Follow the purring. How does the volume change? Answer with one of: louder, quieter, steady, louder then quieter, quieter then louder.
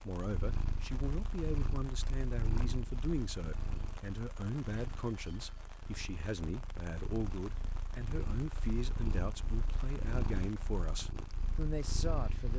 quieter then louder.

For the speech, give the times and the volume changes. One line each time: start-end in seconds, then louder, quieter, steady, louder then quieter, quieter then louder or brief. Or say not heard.
0.0-12.5 steady.